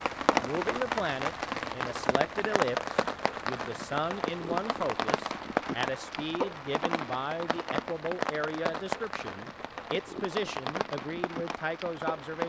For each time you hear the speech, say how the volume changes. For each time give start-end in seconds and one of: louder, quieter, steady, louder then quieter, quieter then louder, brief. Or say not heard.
0.3-12.4 steady.